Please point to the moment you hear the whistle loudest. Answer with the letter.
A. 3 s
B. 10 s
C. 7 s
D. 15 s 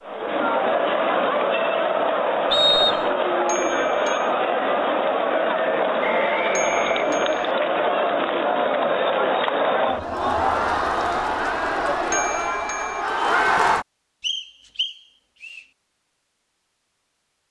A.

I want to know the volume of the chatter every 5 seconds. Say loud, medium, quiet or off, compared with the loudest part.
loud, loud, loud, off.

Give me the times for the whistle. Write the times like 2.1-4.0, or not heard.
2.5-3.1, 6.0-7.5, 14.2-15.6.